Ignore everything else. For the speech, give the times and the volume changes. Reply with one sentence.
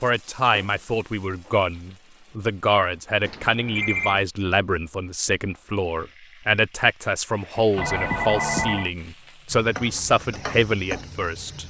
You can hear the speech from 0.0 to 11.6 s, at a steady volume.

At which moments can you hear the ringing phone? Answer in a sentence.
You can hear the ringing phone from 3.2 to 4.2 s and from 7.8 to 8.9 s.